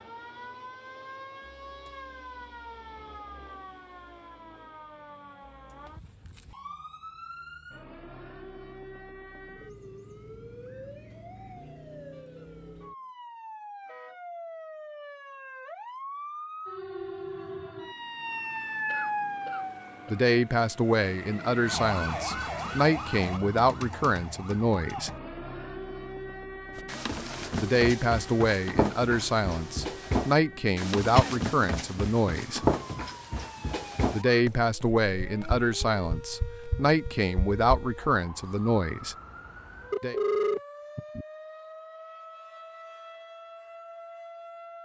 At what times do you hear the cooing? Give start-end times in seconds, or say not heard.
not heard.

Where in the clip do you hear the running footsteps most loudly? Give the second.
33 s.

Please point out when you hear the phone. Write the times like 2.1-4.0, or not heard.
39.9-41.2.